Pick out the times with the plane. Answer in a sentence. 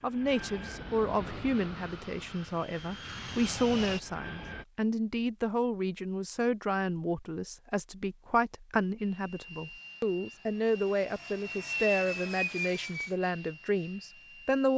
You can hear the plane from 0.0 to 4.7 s and from 8.9 to 14.7 s.